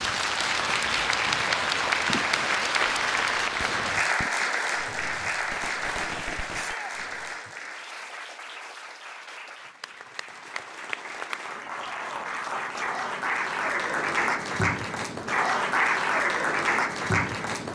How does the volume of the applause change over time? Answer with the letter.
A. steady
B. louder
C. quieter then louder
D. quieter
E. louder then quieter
C.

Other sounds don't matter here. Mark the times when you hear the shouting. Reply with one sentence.
The shouting can be heard from 6.5 to 7.0 s.